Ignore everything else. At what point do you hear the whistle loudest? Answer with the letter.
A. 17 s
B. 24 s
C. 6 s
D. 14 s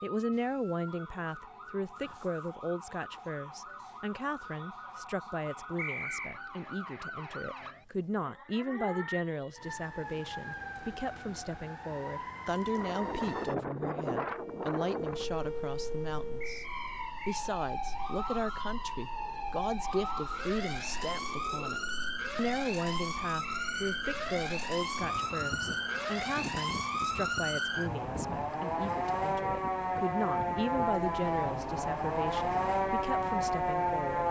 C.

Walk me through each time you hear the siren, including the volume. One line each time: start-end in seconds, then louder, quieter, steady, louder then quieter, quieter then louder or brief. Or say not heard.
0.0-34.2 louder.